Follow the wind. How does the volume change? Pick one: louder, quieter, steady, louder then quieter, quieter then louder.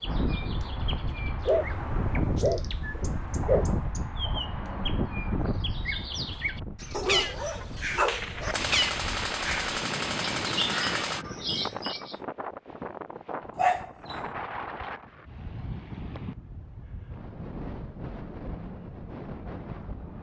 quieter.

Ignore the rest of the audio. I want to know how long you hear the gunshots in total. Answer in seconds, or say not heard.
3 s.